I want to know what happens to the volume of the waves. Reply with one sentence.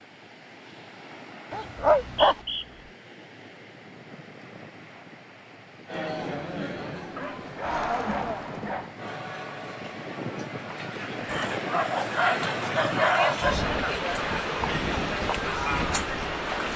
The loudness of the waves goes up.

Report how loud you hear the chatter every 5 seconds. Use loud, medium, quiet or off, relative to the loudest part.
off, loud, loud, loud.